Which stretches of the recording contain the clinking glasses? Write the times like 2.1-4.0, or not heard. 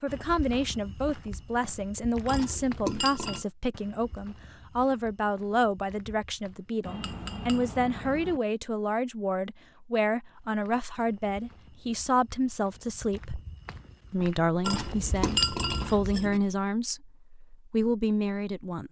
2.2-3.5, 6.8-8.4, 14.6-16.4.